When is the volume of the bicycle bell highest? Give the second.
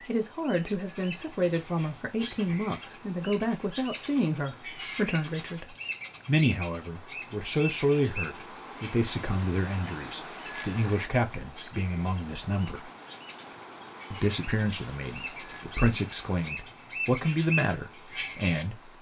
11 s.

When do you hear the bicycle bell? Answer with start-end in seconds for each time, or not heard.
0.8-1.4, 10.4-11.0, 15.4-15.8.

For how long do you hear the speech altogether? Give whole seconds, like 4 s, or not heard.
18 s.